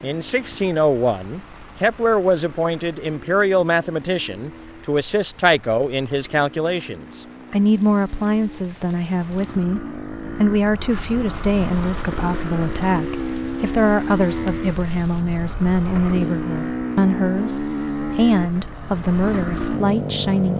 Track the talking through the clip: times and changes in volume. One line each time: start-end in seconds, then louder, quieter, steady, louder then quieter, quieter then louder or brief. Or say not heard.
0.0-20.5 steady.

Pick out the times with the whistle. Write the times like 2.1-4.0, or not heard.
not heard.